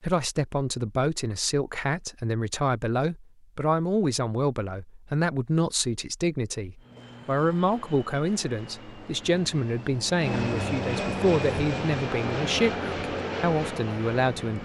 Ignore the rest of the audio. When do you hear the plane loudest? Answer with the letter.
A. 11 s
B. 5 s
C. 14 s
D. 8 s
A.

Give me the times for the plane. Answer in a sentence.
You can hear the plane from 6.8 to 14.6 s.